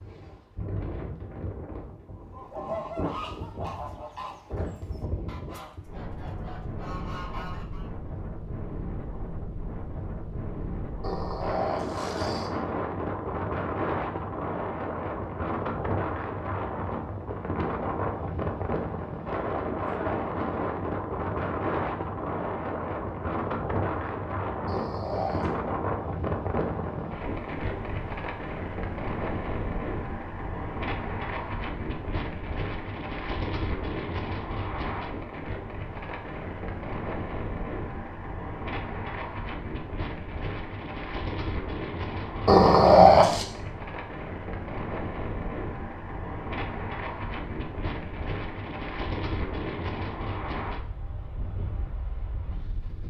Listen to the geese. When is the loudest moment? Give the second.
3 s.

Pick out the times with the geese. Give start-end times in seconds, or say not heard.
2.1-7.9.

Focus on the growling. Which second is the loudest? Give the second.
43 s.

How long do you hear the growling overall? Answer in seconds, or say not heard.
3 s.